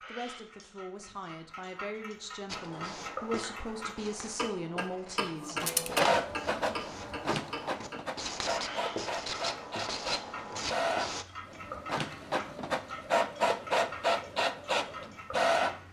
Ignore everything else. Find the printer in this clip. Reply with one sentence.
You can hear the printer from 5.3 to 15.8 s.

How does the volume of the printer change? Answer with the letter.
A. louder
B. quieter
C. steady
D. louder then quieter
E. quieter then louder
E.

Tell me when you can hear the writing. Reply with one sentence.
The writing can be heard from 2.5 to 11.2 s.